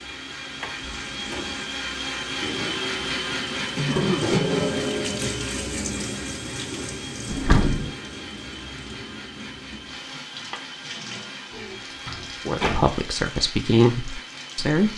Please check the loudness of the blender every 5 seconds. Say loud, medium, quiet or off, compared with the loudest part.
loud, medium, medium.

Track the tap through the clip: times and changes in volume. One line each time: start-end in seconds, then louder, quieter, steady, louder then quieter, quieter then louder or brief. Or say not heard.
0.0-14.9 louder then quieter.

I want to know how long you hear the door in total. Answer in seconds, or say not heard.
3 s.